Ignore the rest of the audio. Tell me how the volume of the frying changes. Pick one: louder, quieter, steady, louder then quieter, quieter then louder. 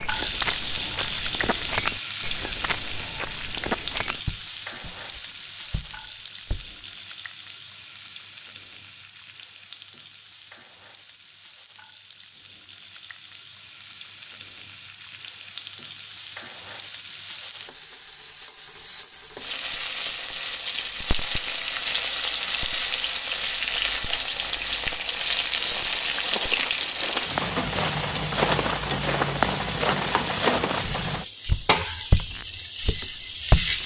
quieter then louder.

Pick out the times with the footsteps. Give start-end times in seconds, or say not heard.
0.0-6.8, 25.6-33.8.